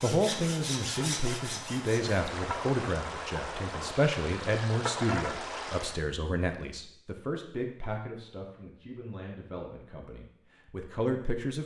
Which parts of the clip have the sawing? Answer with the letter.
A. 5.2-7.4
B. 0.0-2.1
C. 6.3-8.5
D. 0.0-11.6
B.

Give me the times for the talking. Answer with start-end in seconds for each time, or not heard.
0.0-11.6.